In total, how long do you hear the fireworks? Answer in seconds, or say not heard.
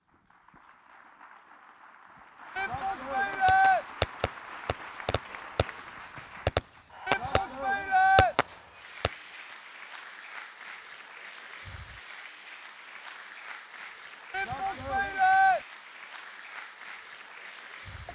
6 s.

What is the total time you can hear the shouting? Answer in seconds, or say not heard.
4 s.